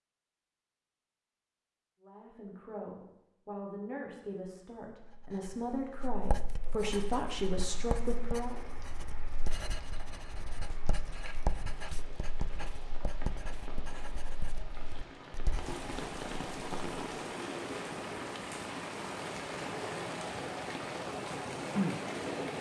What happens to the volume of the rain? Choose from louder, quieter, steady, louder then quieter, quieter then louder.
louder.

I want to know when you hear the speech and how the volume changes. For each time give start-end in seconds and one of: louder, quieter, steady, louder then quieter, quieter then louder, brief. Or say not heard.
2.0-8.6 louder.